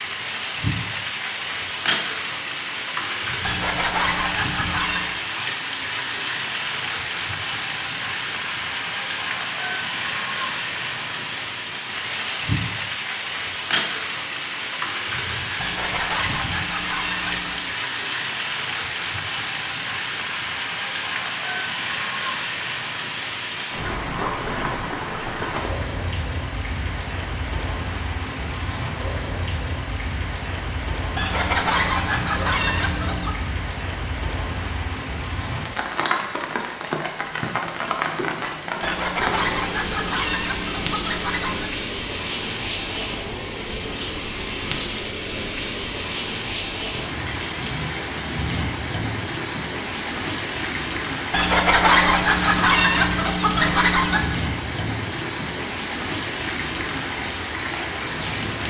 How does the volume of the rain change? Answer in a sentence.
The volume of the rain stays about the same.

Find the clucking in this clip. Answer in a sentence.
You can hear the clucking from 3.4 to 5.2 s, from 15.6 to 17.6 s, from 31.1 to 33.4 s, from 38.8 to 41.8 s and from 51.3 to 54.3 s.